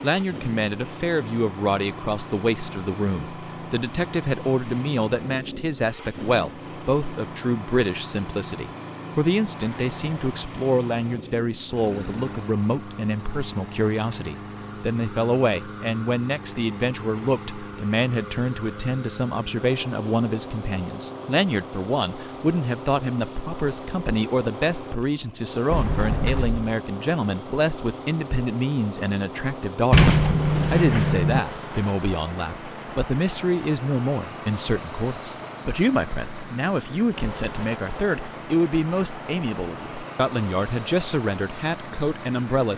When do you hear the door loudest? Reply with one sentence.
The loudest moment of the door is at 30 seconds.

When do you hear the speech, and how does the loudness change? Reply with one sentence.
You can hear the speech from 0.0 to 30.1 s, at a steady volume; and from 30.7 to 42.7 s, at a steady volume.